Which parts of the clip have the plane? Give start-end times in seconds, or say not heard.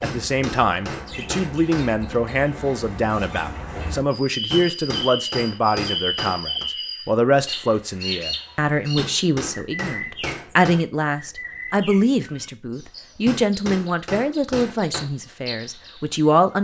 not heard.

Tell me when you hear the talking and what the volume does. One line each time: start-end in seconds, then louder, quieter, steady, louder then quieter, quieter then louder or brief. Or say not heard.
0.0-16.5 steady.